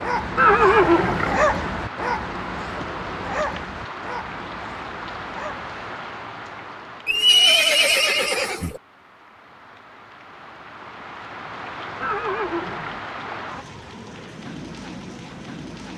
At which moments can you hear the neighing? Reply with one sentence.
The neighing can be heard from 0.3 to 1.4 s, from 7.0 to 8.8 s and from 12.0 to 13.0 s.